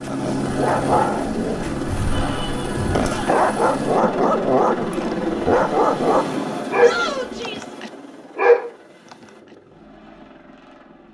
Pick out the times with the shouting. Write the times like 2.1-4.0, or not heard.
2.1-3.4, 6.8-7.8.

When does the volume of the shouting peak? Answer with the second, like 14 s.
7 s.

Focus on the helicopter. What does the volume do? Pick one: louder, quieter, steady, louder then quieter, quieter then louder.
quieter.